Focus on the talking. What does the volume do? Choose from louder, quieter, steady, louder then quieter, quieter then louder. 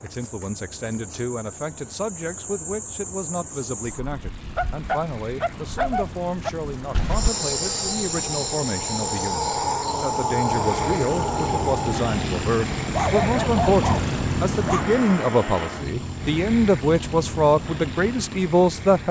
louder.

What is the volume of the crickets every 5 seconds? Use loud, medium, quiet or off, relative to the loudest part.
medium, loud, loud, quiet.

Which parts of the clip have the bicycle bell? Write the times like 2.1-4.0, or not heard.
not heard.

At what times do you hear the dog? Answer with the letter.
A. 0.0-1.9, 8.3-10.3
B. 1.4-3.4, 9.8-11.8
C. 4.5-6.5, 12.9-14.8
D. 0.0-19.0
C.